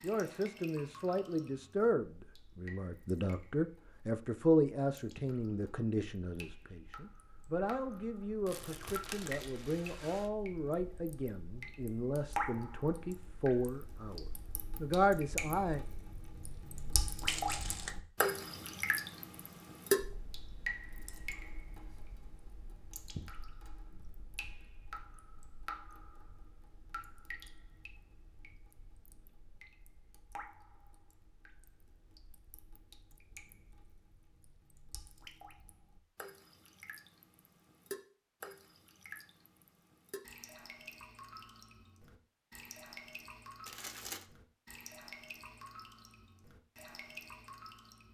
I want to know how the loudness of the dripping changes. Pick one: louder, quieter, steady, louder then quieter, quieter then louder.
louder then quieter.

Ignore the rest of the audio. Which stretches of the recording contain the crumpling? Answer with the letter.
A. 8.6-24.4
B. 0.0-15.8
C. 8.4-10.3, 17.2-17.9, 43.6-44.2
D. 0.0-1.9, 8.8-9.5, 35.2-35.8
C.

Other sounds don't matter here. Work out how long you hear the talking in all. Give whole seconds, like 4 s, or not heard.
16 s.